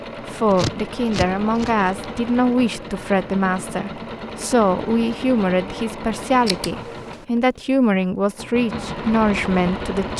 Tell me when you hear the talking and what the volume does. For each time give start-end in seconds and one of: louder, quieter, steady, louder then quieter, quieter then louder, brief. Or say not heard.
0.2-10.1 steady.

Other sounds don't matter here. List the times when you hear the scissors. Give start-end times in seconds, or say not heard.
0.5-1.9, 6.2-7.2.